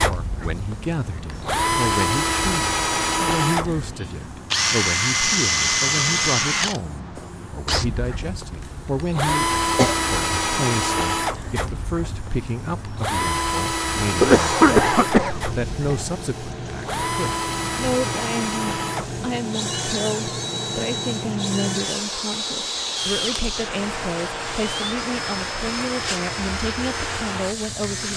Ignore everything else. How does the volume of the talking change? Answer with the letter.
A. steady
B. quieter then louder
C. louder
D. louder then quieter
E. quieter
A.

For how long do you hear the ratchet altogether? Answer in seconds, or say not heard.
not heard.